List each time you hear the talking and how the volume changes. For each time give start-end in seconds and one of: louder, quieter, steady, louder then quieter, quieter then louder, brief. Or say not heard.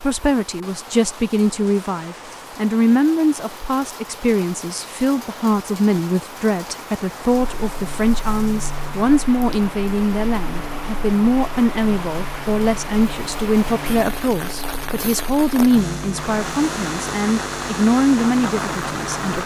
0.0-19.4 steady.